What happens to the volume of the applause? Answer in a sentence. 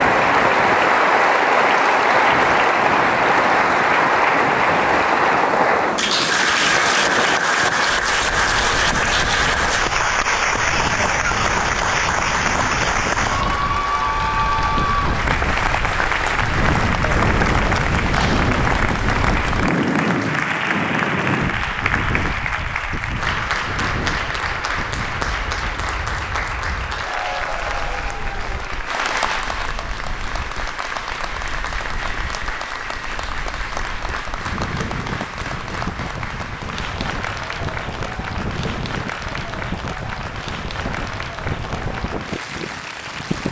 The loudness of the applause goes down.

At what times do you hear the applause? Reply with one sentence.
You can hear the applause from 0.0 to 43.4 s.